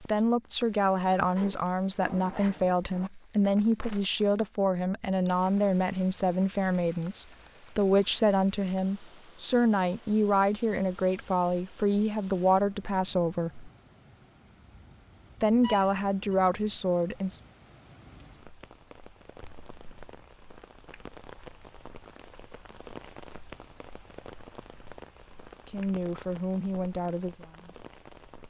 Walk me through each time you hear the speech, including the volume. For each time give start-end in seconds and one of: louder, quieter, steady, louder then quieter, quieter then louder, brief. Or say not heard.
0.0-13.7 steady
15.4-17.4 brief
25.6-27.8 brief.